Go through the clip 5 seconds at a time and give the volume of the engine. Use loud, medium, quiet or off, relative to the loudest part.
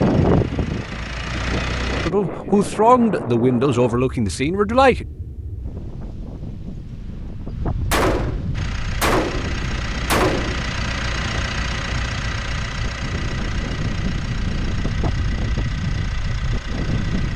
loud, loud, loud, medium.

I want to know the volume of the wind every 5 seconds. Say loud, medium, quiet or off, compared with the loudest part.
loud, medium, medium, loud.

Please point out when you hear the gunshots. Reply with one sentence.
You can hear the gunshots from 7.9 to 10.7 s.